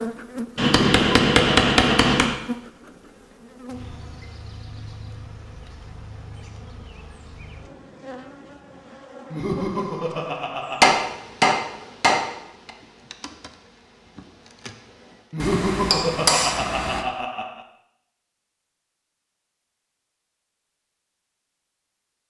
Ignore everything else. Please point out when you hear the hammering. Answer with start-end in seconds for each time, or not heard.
0.6-2.4, 10.8-12.7, 15.4-17.1.